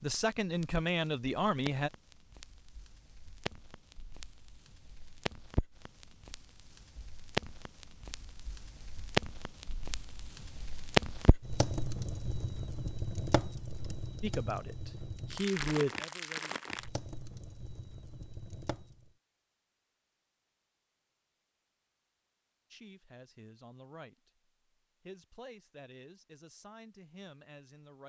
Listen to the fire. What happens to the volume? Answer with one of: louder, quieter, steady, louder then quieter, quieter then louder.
louder then quieter.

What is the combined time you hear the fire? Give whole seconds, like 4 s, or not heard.
19 s.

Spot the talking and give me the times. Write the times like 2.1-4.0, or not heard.
0.0-1.9, 14.2-16.6, 22.7-28.0.